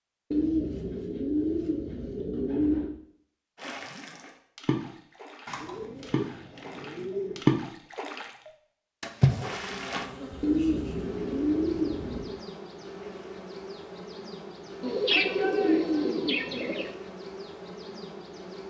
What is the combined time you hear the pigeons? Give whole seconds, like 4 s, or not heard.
9 s.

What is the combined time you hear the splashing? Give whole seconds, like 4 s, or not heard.
6 s.